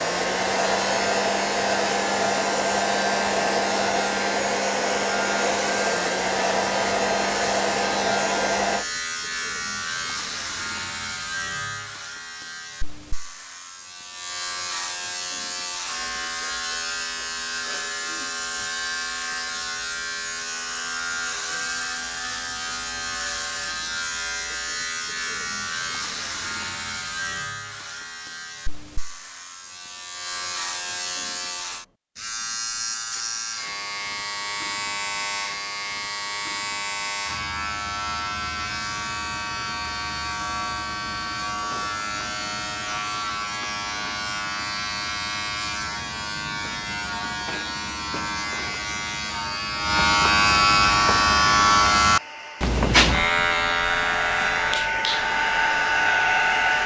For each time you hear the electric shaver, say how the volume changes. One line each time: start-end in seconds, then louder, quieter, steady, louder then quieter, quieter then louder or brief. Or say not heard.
0.0-56.8 louder.